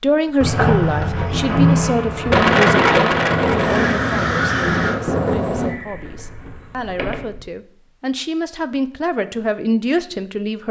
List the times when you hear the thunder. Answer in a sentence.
You can hear the thunder from 2.3 to 5.8 s.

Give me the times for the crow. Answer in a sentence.
You can hear the crow from 3.5 to 7.0 s.